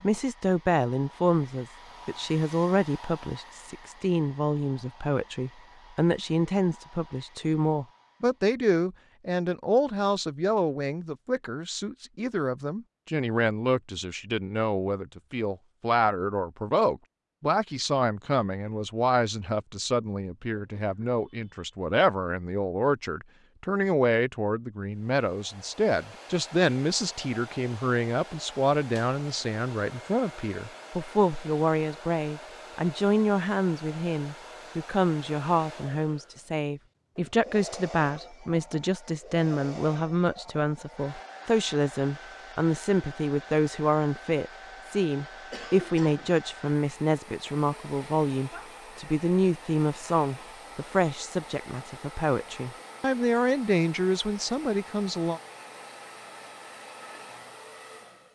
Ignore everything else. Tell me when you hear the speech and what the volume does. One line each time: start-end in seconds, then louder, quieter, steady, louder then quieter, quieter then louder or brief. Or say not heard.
0.0-55.4 steady.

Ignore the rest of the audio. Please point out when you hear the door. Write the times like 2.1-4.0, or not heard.
not heard.